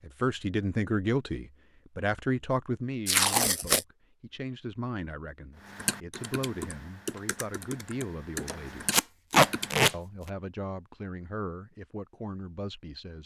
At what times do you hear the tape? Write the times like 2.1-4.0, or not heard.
3.0-3.9, 8.9-9.9.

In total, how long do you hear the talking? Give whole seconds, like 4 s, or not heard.
12 s.